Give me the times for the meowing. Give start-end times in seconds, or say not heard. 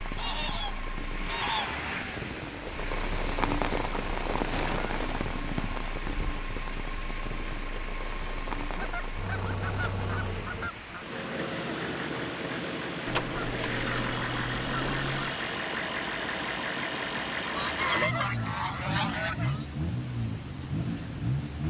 not heard.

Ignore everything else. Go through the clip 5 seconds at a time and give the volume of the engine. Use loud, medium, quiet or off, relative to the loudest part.
medium, medium, loud, loud, loud.